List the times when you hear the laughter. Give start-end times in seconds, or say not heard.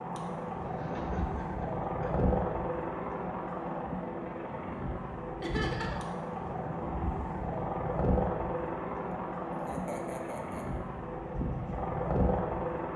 0.7-2.3, 5.4-6.1, 9.6-10.7.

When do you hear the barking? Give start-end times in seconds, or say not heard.
not heard.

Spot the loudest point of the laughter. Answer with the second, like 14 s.
6 s.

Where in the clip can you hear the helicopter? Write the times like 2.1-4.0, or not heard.
0.0-12.9.